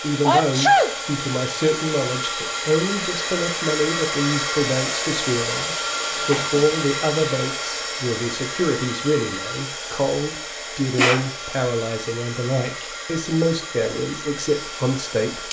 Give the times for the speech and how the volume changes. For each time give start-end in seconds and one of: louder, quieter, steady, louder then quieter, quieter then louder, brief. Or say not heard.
0.0-15.4 steady.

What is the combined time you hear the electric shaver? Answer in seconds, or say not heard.
not heard.